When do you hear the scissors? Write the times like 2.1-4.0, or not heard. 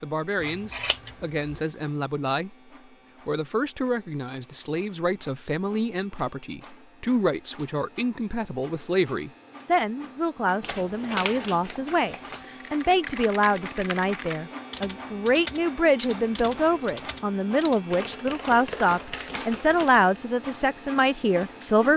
0.4-1.6, 10.6-12.4, 16.1-17.1.